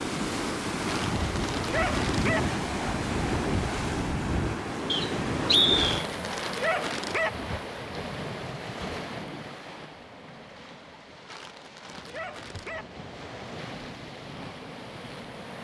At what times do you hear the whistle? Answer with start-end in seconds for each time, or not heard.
4.9-6.0.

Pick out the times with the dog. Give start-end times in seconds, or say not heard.
0.8-2.4, 5.8-7.3, 11.2-12.8.